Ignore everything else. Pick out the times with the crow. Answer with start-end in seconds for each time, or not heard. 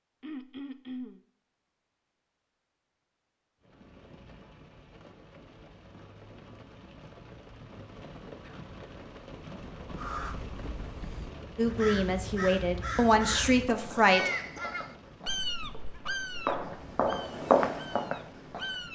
9.8-18.9.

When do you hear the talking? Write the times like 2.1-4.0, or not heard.
11.6-14.3.